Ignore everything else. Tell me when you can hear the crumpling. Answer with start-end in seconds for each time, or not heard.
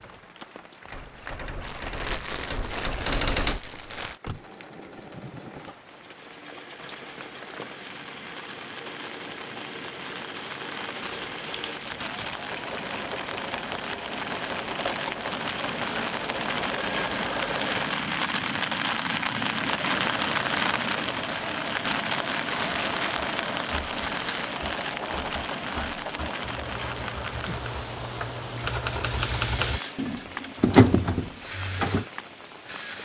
1.6-4.2, 11.0-12.4, 22.4-24.6.